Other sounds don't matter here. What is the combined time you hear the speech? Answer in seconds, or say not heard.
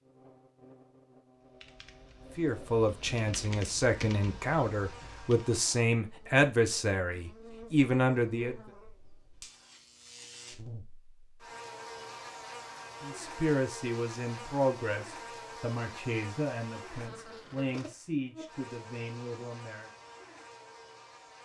13 s.